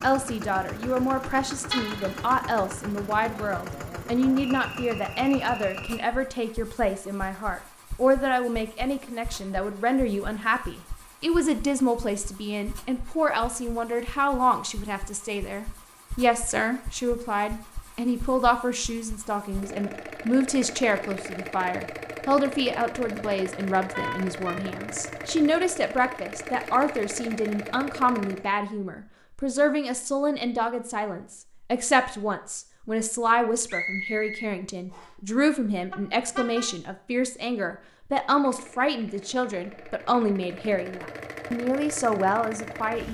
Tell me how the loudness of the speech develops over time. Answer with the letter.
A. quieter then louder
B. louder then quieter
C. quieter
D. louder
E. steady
E.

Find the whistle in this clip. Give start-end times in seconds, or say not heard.
4.3-6.0, 33.6-35.0.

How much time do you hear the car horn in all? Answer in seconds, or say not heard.
2 s.